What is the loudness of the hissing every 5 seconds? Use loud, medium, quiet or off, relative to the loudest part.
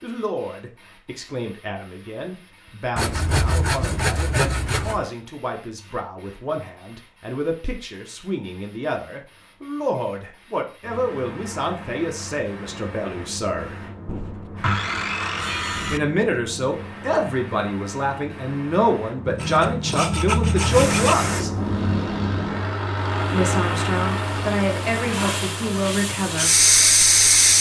quiet, quiet, quiet, quiet, medium, loud.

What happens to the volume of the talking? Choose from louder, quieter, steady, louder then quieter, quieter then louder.
louder.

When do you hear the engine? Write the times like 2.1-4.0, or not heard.
21.5-27.5.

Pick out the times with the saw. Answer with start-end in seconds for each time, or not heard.
3.0-5.0, 14.1-16.0, 19.2-21.1.